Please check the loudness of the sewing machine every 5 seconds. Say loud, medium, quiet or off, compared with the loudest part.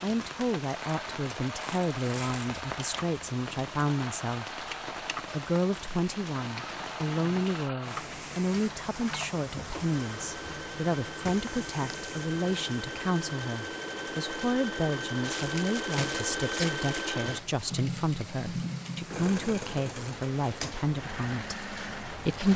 medium, medium, loud, loud, medium.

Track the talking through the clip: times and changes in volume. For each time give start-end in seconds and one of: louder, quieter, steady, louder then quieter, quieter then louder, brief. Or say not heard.
0.0-4.6 steady
5.3-22.5 steady.